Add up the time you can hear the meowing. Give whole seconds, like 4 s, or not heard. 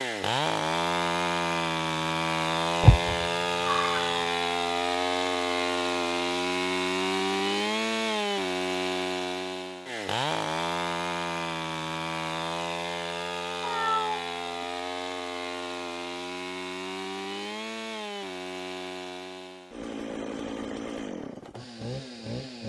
2 s.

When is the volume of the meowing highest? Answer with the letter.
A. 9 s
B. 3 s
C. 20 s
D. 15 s
B.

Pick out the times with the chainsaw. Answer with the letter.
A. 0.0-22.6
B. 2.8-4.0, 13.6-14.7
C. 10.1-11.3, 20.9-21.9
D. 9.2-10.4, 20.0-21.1
A.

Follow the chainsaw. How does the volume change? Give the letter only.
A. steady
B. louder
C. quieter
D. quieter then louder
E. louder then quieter
C.